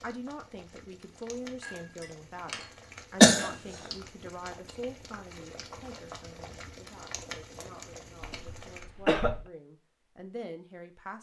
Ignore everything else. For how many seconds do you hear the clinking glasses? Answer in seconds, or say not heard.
2 s.